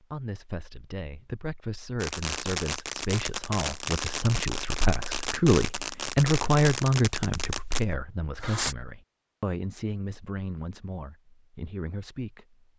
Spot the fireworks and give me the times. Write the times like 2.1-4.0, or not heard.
2.0-8.8.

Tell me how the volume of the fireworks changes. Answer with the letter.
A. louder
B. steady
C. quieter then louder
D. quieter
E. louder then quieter
B.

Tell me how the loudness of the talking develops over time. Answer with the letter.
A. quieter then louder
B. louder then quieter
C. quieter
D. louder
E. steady
B.